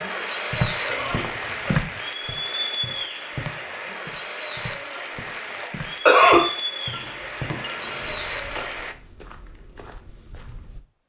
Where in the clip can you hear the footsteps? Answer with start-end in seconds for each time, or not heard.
0.5-10.8.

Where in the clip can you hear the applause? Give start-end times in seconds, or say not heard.
0.0-8.9.